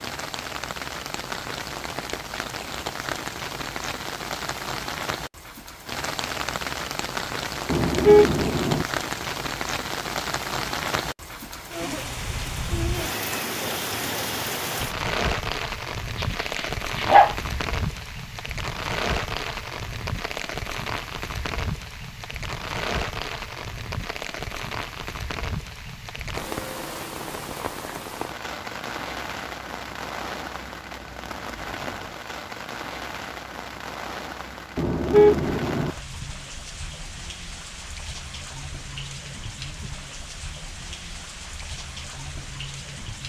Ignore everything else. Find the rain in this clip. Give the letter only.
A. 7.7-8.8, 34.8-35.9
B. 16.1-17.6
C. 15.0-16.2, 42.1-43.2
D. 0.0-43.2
D.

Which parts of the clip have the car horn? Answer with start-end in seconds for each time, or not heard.
7.7-8.8, 34.8-35.9.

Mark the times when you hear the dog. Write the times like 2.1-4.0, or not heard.
16.1-17.6.